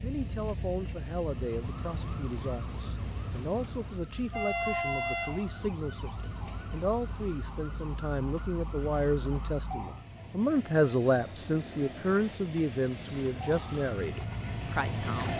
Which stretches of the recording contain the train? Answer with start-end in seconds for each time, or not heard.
0.0-15.3.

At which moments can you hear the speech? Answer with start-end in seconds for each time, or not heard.
0.0-15.3.